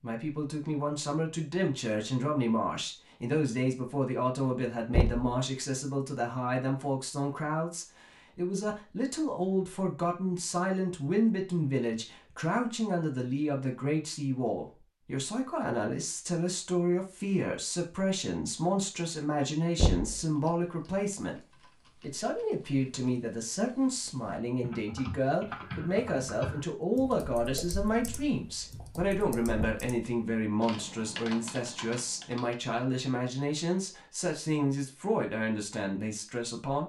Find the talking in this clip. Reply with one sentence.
The talking can be heard from 0.0 to 21.4 s and from 22.0 to 36.8 s.